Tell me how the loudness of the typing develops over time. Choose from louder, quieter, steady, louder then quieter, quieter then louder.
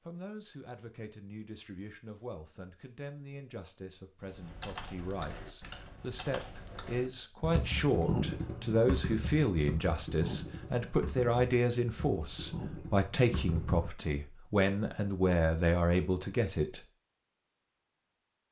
quieter.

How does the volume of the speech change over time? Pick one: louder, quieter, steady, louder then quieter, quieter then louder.
louder.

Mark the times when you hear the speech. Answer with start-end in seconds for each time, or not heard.
0.1-16.8.